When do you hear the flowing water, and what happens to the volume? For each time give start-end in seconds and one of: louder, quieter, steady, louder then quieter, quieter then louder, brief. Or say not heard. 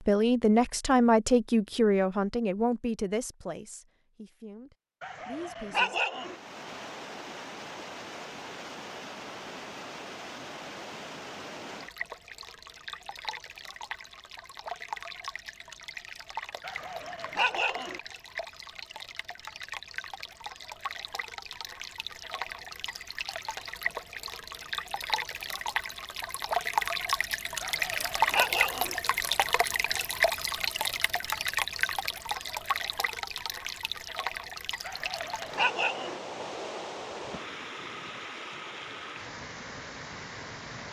6.2-40.8 louder then quieter.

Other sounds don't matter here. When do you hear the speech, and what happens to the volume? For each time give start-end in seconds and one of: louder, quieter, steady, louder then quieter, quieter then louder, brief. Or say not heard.
0.1-6.0 quieter.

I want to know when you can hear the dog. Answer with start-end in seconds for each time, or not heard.
5.0-6.3, 16.6-18.0, 27.6-28.9, 34.8-36.2.